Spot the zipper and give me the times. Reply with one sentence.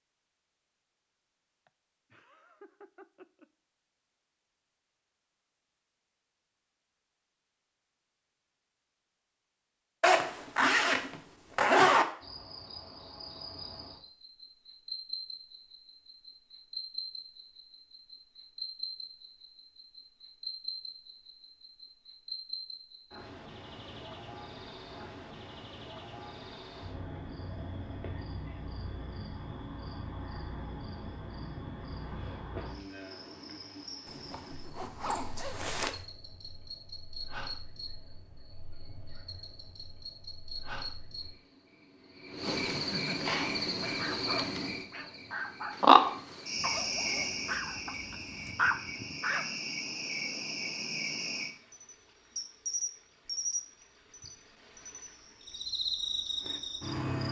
The zipper can be heard from 10.0 to 12.1 s, from 34.0 to 35.9 s and from 46.5 to 48.5 s.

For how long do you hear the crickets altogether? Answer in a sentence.
The crickets can be heard for 45 seconds in total.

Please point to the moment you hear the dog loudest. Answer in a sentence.
The volume of the dog peaks at 49 seconds.